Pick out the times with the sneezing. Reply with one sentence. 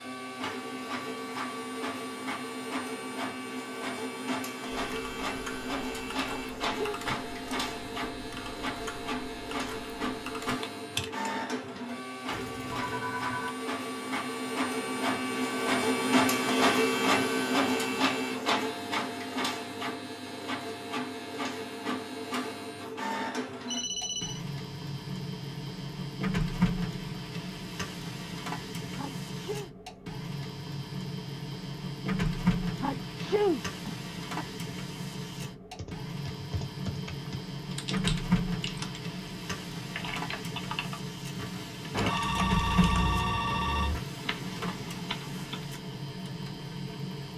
You can hear the sneezing from 6.2 to 7.0 s, from 28.9 to 29.7 s and from 32.8 to 34.5 s.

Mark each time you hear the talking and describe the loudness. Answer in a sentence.
You can't hear the talking here.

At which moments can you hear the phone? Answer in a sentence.
The phone can be heard from 12.2 to 13.6 s, from 23.6 to 24.4 s and from 41.9 to 44.0 s.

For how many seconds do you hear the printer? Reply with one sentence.
The printer can be heard for 47 seconds in total.